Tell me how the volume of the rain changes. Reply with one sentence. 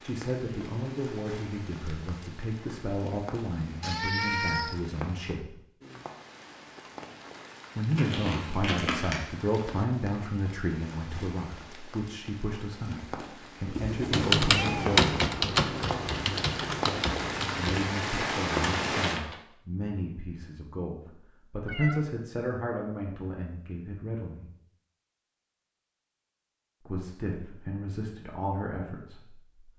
The volume of the rain goes up.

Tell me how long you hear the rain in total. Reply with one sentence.
You can hear the rain for 19 seconds altogether.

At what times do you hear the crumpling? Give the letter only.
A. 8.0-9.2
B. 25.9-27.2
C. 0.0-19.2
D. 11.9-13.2
A.